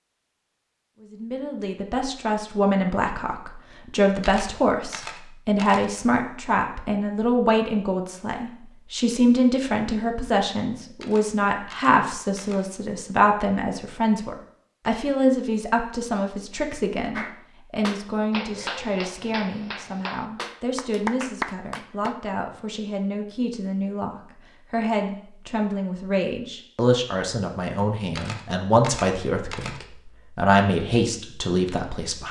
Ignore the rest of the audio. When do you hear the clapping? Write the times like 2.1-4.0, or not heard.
17.1-22.2.